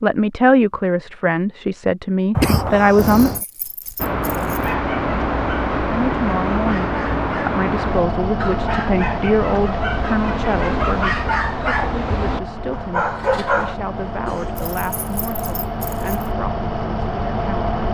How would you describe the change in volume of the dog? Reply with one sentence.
The loudness of the dog goes up.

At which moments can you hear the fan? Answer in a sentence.
The fan can be heard from 4.0 to 17.8 s.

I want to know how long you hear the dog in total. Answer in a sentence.
The dog can be heard for 9 seconds in total.